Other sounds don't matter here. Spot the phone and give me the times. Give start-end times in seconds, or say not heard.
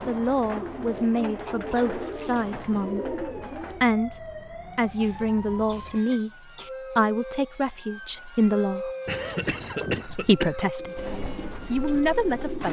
not heard.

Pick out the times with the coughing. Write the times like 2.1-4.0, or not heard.
1.2-2.5, 5.0-6.7, 9.1-10.7.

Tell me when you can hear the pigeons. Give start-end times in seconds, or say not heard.
0.0-3.9, 9.1-12.6.